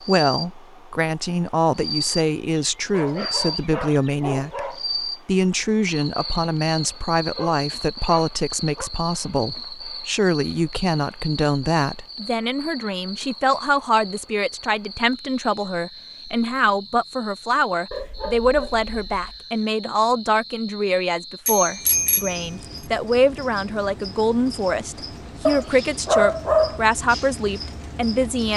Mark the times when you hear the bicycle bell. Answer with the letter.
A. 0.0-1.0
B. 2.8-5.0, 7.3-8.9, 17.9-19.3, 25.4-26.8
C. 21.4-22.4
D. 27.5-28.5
C.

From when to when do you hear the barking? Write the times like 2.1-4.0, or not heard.
2.8-5.0, 7.3-8.9, 17.9-19.3, 25.4-26.8.